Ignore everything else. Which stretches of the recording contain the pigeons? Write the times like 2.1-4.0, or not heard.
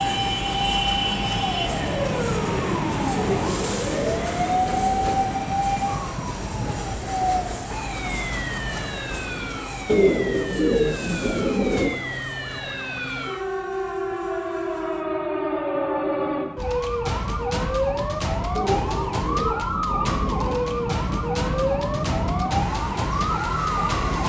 3.1-5.2, 9.8-11.9, 18.6-20.6.